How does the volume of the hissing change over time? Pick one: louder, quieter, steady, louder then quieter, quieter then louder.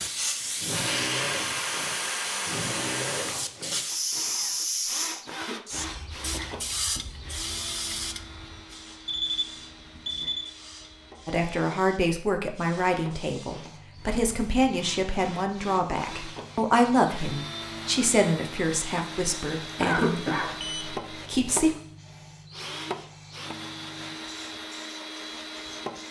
quieter.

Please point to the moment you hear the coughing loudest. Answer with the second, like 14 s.
20 s.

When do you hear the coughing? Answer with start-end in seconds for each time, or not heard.
5.2-7.1, 19.8-20.6.